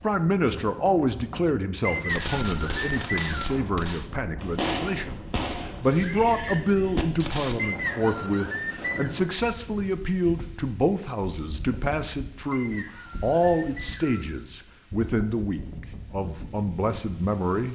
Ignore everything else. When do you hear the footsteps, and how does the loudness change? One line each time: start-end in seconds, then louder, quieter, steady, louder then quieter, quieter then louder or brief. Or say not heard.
not heard.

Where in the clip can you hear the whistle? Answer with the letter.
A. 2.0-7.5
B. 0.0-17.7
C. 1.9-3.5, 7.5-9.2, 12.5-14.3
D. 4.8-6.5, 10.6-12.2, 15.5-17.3
C.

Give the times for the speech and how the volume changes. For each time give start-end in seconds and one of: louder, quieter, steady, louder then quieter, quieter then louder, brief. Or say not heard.
0.0-17.7 steady.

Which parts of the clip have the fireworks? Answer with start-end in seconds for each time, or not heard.
2.0-7.5.